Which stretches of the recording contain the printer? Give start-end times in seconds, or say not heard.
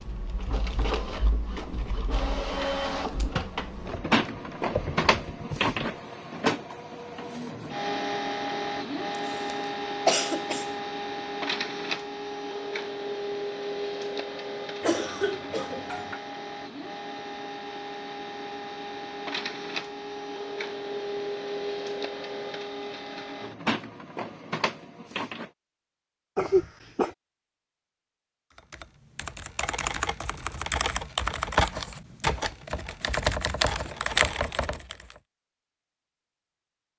0.0-25.5.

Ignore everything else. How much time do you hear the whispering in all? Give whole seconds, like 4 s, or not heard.
not heard.